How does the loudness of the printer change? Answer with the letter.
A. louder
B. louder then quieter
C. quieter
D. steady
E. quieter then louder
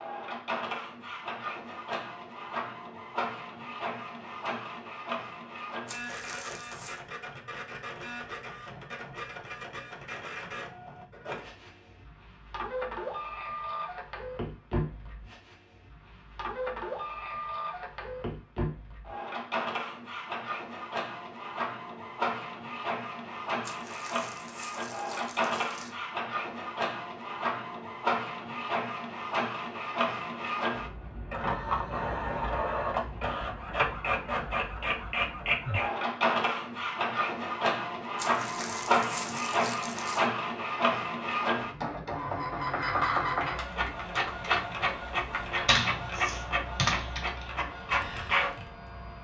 A.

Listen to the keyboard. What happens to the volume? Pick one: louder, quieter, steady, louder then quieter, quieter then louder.
louder then quieter.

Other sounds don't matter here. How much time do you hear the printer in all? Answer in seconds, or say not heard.
49 s.